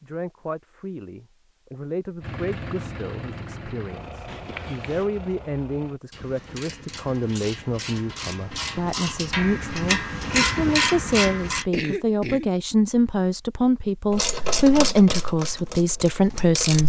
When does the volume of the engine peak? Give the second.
3 s.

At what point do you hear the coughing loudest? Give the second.
12 s.